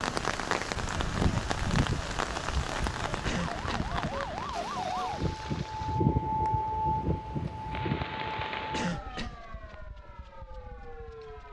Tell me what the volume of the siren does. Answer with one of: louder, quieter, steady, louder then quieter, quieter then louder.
louder then quieter.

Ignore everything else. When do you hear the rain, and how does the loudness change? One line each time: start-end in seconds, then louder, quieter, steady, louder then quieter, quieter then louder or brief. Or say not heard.
0.0-8.9 quieter then louder.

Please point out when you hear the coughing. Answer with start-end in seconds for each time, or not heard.
3.2-3.9, 8.7-9.3.